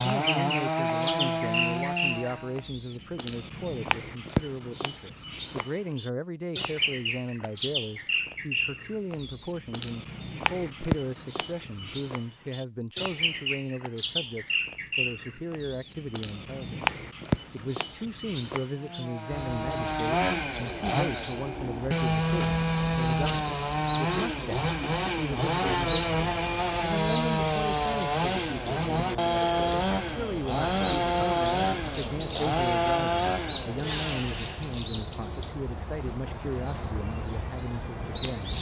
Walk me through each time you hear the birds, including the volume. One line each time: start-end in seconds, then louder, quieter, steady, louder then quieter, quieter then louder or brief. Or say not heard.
0.0-38.5 steady.